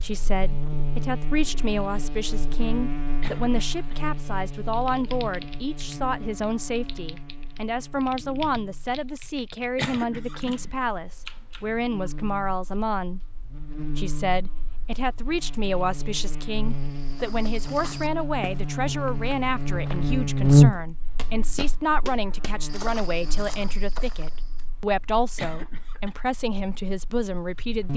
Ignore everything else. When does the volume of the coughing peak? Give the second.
10 s.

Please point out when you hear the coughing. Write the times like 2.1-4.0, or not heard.
3.2-4.0, 9.8-10.6, 25.4-26.1.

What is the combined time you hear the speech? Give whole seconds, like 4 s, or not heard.
27 s.